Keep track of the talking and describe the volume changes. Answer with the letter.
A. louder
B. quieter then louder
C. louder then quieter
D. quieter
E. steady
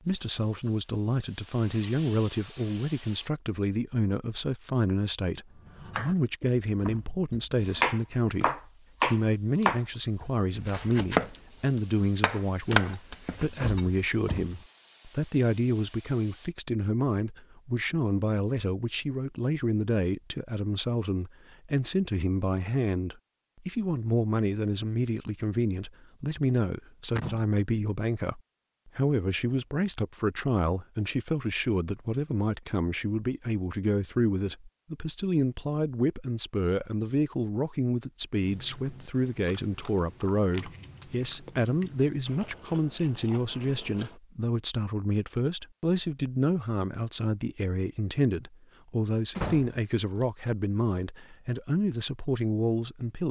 E.